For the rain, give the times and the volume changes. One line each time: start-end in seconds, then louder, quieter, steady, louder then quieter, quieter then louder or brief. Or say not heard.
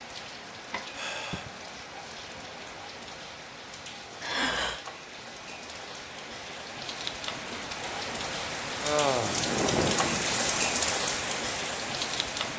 0.0-12.5 louder.